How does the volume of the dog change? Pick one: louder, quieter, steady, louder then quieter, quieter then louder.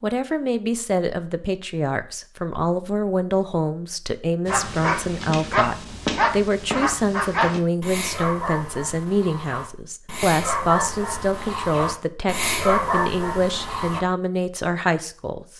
quieter then louder.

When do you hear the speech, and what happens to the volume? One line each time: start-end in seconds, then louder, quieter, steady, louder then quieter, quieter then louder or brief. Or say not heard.
0.0-15.5 steady.